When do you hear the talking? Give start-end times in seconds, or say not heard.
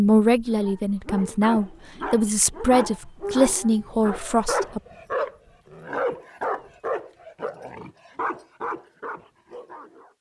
0.0-4.8.